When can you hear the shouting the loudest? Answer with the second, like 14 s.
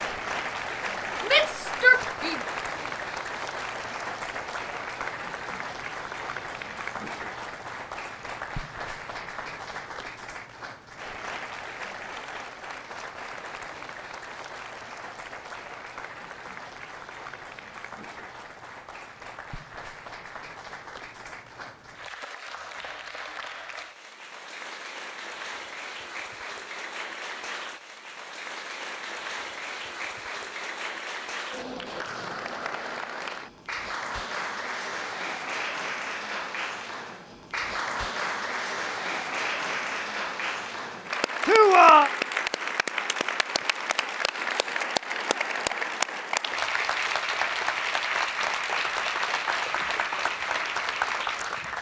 42 s.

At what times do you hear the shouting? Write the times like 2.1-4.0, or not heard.
1.2-2.4, 41.5-42.1.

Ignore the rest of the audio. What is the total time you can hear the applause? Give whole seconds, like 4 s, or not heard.
52 s.